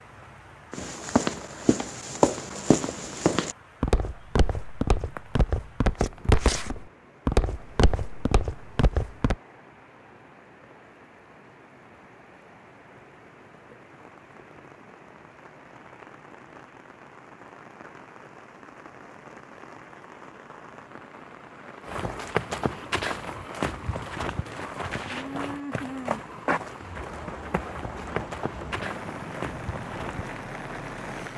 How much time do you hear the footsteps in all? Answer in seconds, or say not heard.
17 s.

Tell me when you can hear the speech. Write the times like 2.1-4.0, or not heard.
not heard.